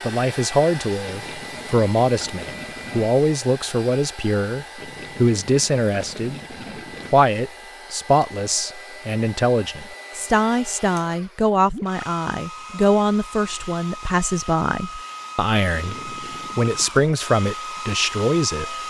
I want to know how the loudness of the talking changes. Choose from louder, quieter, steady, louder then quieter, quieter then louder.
steady.